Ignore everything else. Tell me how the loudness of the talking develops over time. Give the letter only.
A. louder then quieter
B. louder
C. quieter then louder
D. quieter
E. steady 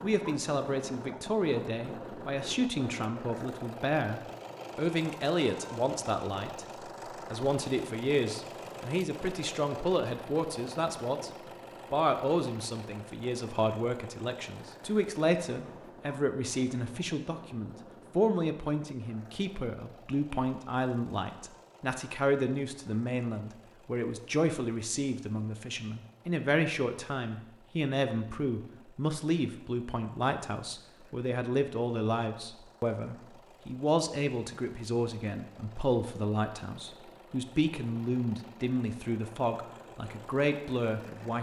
E.